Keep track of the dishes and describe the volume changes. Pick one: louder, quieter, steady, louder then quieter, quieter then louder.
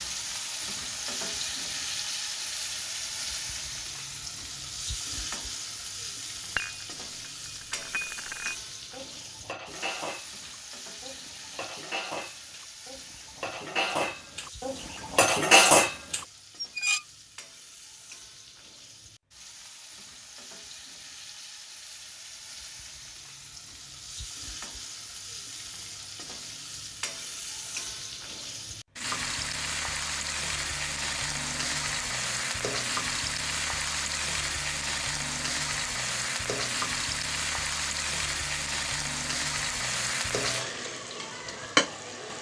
louder.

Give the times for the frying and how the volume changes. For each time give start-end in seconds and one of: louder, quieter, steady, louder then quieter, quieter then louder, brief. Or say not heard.
0.0-42.3 quieter then louder.